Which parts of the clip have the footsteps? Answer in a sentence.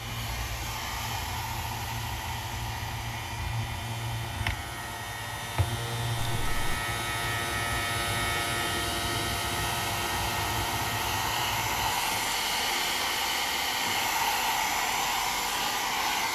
You can't hear the footsteps here.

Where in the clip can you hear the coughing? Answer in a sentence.
You can't hear the coughing here.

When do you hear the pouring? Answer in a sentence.
You can hear the pouring from 6.2 to 6.8 s.